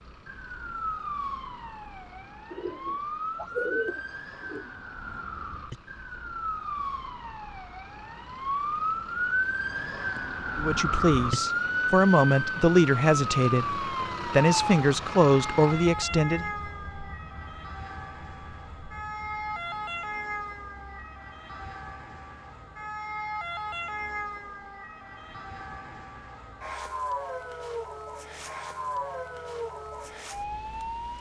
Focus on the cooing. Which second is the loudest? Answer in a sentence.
The volume of the cooing peaks at 4 seconds.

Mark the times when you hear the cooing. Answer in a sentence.
The cooing can be heard from 2.5 to 4.7 s.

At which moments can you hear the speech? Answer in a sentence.
The speech can be heard from 10.6 to 16.5 s.